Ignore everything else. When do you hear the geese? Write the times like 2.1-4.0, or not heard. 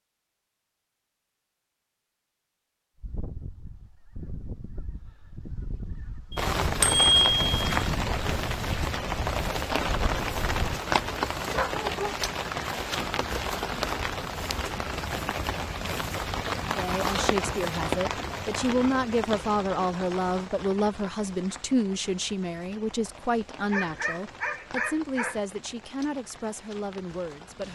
3.0-10.8.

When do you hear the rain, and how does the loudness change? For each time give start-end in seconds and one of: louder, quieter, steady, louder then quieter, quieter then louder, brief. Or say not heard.
6.3-27.6 quieter.